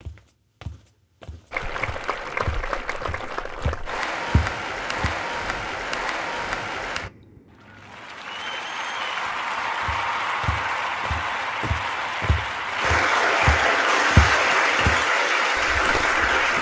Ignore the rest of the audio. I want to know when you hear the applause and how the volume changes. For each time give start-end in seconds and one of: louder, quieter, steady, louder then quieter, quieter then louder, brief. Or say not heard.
1.5-16.5 louder.